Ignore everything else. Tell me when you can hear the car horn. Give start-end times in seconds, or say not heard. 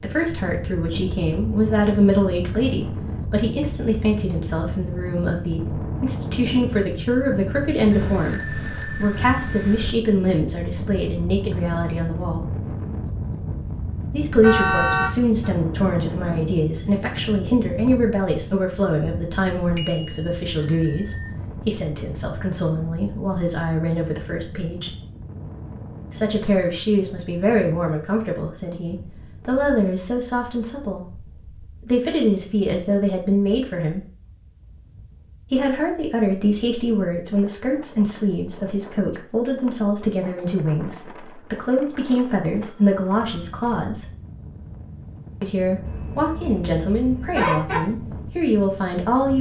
14.4-15.5, 45.8-47.8.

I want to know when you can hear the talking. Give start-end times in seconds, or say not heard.
0.0-12.4, 14.1-24.9, 26.1-31.1, 31.9-34.0, 35.5-44.0, 45.4-49.3.